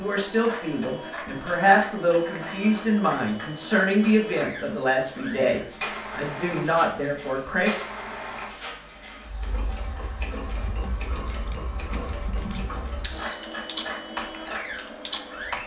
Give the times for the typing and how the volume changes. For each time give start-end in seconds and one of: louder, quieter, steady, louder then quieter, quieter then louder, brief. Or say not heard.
10.5-15.6 louder.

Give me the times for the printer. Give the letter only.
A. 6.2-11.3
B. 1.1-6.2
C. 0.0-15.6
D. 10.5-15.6
C.